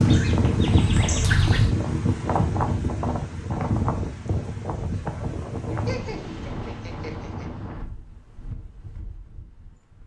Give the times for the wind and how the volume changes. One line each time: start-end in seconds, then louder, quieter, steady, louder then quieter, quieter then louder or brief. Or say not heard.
0.0-10.0 quieter.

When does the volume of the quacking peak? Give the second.
1 s.